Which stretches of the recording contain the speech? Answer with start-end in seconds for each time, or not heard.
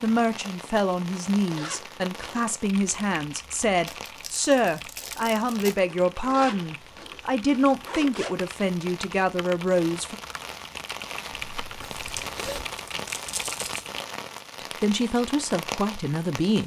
0.0-10.2, 14.6-16.6.